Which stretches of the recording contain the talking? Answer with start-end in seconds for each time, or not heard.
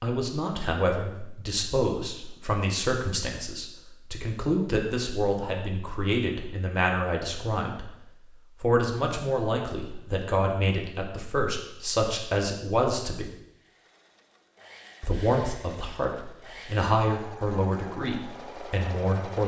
0.0-7.9, 8.6-13.3, 15.0-19.4.